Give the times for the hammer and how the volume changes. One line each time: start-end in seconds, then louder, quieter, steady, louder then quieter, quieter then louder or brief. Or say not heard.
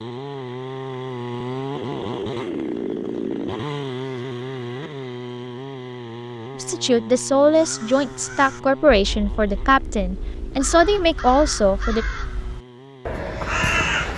not heard.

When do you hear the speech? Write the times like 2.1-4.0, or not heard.
6.5-12.1.